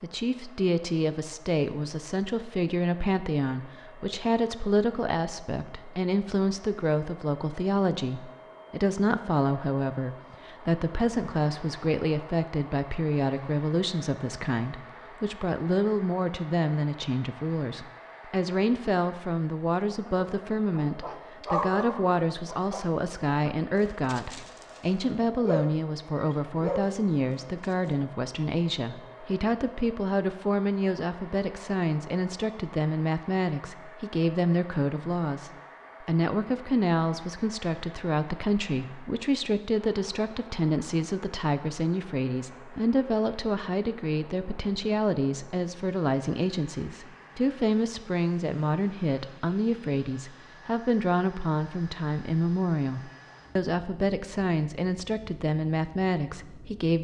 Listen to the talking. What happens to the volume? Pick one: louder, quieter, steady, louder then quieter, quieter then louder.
steady.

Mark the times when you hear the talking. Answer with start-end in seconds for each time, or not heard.
0.0-56.9.